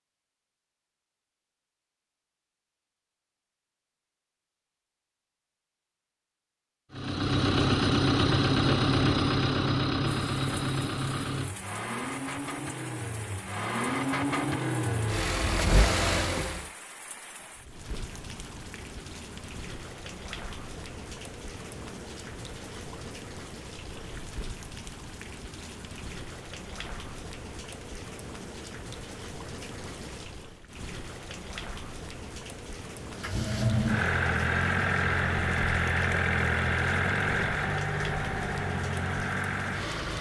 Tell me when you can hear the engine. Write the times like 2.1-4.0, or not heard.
6.9-16.7, 33.1-40.1.